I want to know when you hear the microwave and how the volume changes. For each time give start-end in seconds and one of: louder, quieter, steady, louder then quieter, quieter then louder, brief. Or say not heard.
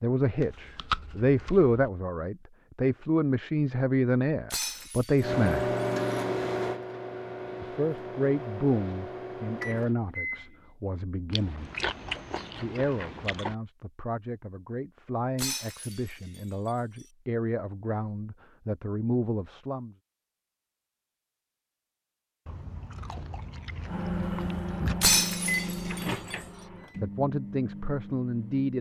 5.2-10.7 quieter
23.9-28.7 quieter.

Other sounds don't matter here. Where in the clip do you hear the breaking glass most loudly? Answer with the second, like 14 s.
25 s.